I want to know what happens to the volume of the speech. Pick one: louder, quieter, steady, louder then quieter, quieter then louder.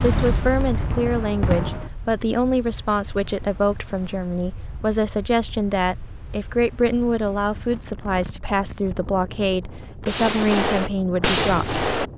steady.